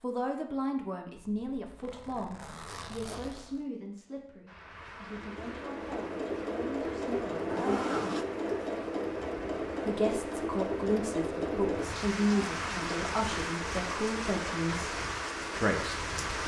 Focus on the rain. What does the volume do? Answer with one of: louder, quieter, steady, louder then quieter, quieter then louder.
louder.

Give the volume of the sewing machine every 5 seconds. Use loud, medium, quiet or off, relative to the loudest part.
off, loud, loud, medium.